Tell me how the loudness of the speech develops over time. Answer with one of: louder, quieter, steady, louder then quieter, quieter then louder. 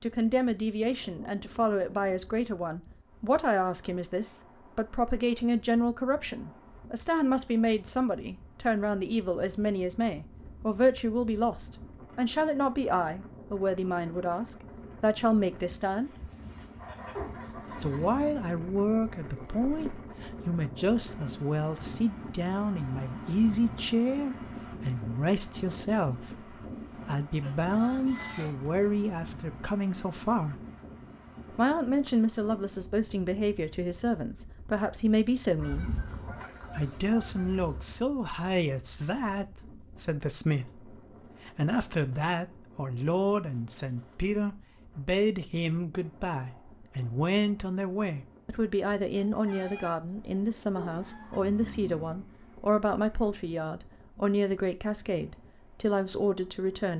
steady.